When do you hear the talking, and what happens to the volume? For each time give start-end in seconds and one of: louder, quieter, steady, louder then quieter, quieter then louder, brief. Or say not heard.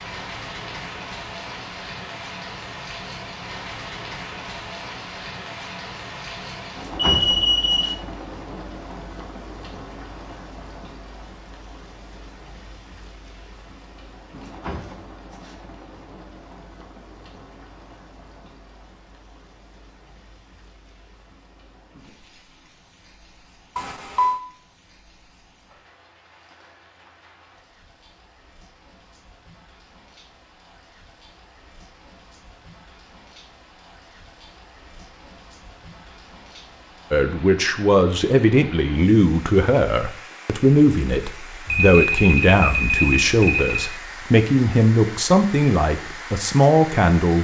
37.1-47.3 steady.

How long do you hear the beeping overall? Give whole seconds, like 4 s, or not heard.
4 s.